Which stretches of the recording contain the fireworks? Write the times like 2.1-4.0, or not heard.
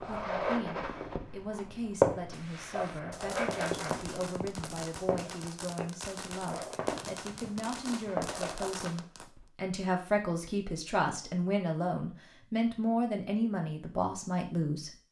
2.3-9.3.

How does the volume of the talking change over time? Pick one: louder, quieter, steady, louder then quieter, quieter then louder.
louder.